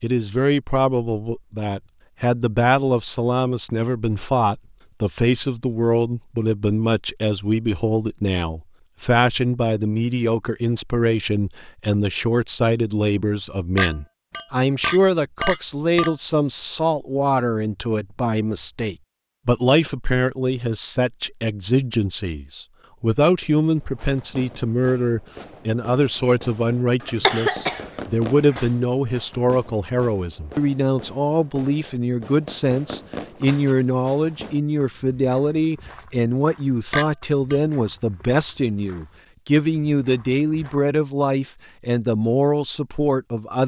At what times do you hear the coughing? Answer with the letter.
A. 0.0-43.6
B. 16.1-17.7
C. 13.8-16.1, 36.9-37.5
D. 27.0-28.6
D.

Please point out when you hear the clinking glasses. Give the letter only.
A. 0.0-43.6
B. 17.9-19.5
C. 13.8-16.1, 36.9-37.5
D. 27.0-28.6
C.